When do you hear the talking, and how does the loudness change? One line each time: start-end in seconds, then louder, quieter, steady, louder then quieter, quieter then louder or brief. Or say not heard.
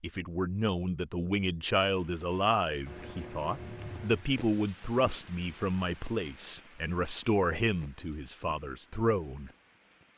0.0-9.5 steady.